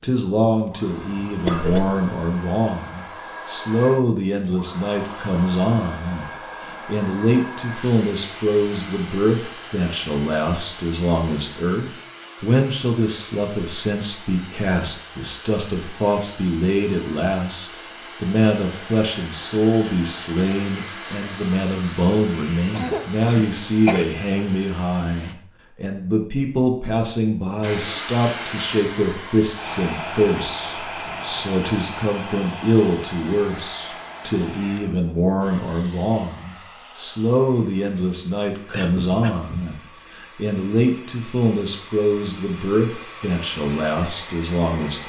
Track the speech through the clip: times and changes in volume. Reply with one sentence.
The speech can be heard from 0.0 to 45.0 s, at a steady volume.